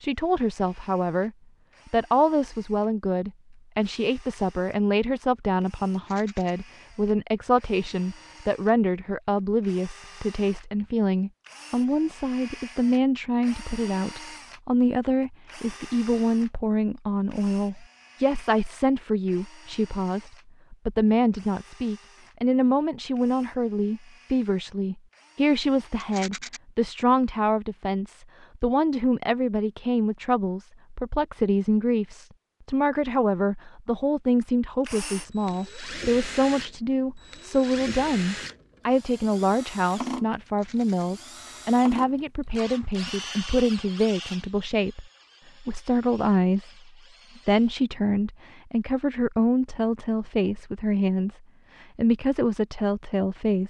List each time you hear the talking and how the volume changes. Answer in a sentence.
You can hear the talking briefly from 0.0 to 1.3 s; and from 1.9 to 53.6 s, at a steady volume.